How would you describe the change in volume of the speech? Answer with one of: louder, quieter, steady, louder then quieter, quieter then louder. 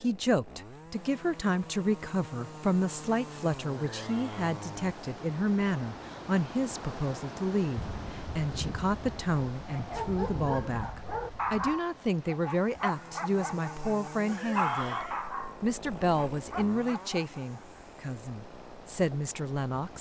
steady.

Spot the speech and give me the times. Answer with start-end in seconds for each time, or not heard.
0.0-19.9.